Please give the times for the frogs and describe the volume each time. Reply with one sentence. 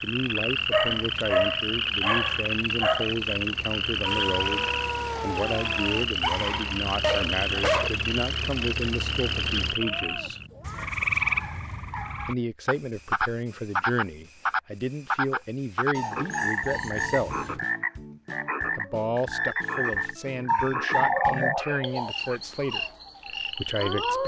The frogs can be heard from 0.0 to 24.2 s, at a steady volume.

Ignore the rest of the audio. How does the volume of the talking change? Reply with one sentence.
The volume of the talking stays about the same.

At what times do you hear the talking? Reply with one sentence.
The talking can be heard from 0.0 to 10.4 s, from 12.2 to 17.6 s and from 18.8 to 24.2 s.